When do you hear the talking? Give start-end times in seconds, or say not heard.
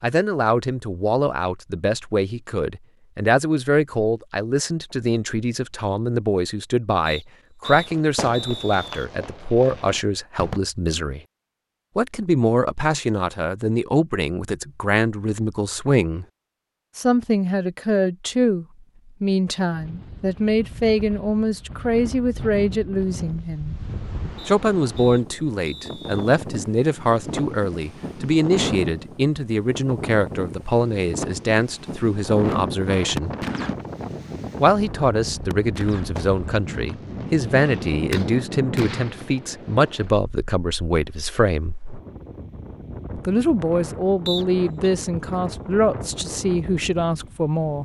0.0-11.2, 11.9-16.2, 16.9-23.8, 24.4-33.3, 34.6-41.8, 43.1-47.8.